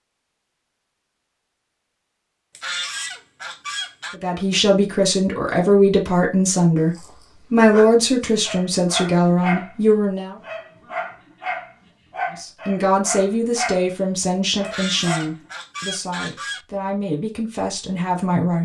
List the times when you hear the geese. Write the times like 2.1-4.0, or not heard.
2.5-4.2, 14.6-16.6.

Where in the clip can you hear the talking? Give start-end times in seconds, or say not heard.
4.1-10.3, 12.3-18.5.